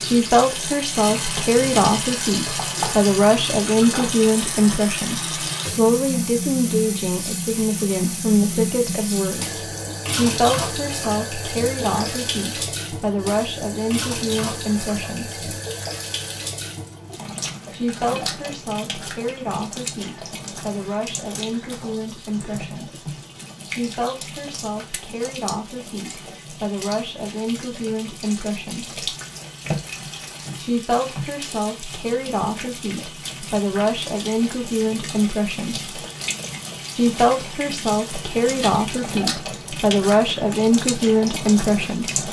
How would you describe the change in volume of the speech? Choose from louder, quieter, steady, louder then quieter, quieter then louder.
quieter then louder.